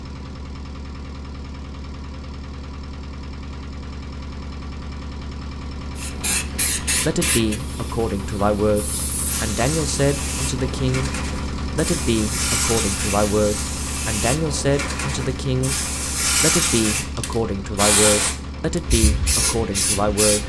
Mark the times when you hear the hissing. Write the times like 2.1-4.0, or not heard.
6.0-20.4.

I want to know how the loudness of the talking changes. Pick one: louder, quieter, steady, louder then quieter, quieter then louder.
steady.